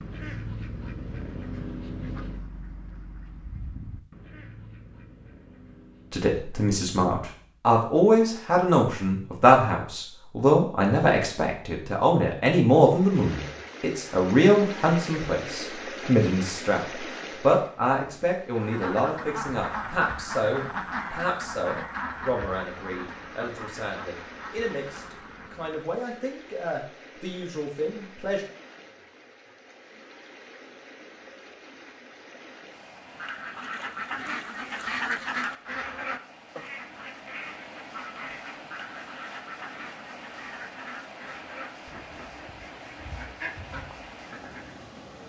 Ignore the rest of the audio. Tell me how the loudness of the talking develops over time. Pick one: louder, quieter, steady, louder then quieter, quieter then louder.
quieter.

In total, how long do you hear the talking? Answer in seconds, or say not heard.
22 s.